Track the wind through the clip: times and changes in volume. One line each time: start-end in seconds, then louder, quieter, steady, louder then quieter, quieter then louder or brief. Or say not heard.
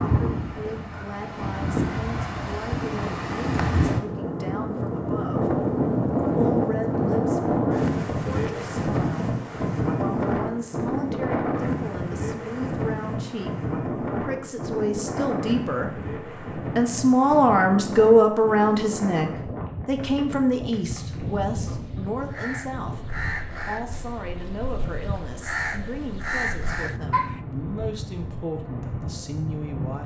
0.0-30.0 quieter.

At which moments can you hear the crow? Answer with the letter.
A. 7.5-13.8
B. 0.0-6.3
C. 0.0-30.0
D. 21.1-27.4
D.